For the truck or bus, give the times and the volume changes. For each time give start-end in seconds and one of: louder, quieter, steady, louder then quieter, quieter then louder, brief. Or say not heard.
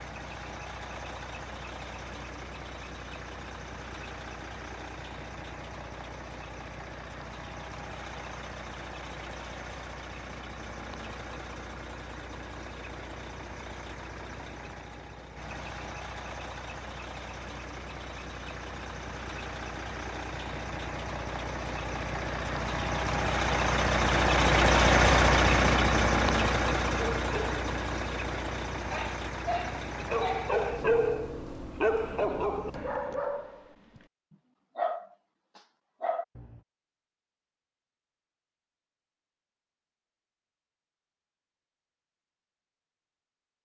0.0-33.1 louder then quieter.